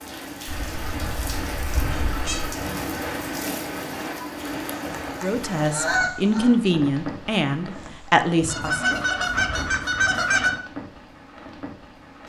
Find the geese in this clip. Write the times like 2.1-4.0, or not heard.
0.5-2.5, 4.5-6.5, 8.4-10.5.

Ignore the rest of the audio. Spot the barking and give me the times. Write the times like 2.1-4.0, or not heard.
not heard.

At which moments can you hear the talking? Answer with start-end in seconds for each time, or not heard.
5.2-8.9.